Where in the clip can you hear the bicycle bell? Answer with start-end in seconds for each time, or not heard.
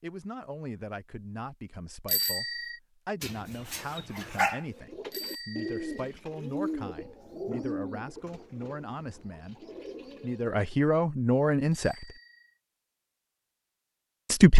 2.0-2.8, 5.1-6.1, 11.7-12.6.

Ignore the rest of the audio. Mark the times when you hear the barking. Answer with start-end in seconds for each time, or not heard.
3.2-4.7.